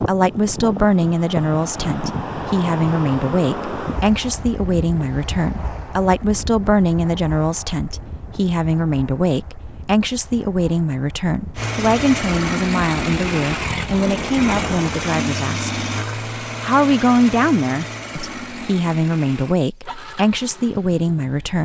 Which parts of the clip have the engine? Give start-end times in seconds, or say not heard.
11.6-21.6.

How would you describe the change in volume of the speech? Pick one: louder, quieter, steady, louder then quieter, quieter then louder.
steady.